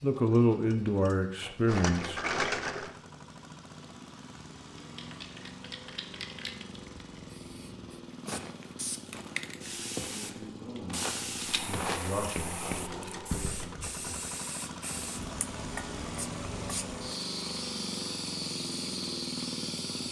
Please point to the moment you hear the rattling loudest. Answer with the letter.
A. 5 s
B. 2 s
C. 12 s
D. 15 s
B.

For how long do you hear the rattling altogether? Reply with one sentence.
You can hear the rattling for 3 seconds altogether.